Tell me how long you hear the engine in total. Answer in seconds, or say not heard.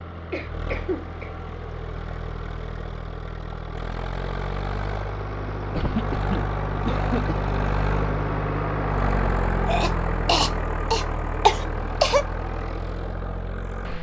14 s.